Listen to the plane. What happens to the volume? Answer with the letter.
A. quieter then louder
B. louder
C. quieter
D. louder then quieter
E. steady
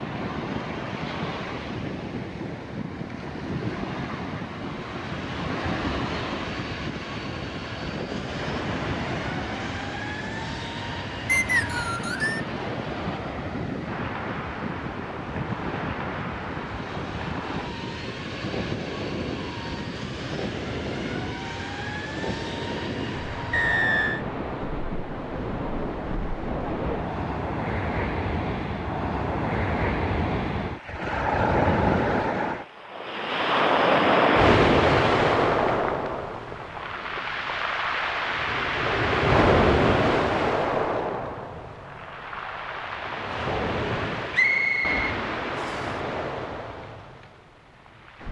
E.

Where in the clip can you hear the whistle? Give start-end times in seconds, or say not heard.
11.2-12.4, 23.5-24.2, 44.3-45.9.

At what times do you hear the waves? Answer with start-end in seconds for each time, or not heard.
0.0-48.2.